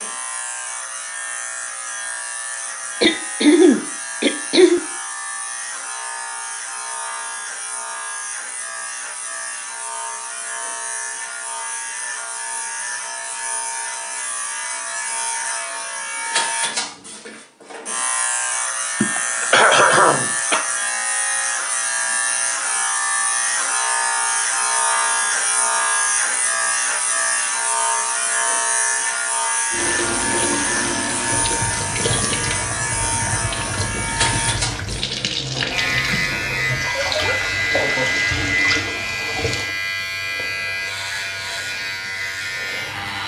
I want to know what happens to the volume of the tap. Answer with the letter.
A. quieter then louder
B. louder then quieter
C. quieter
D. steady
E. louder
D.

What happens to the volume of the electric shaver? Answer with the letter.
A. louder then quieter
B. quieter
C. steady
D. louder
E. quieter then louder
D.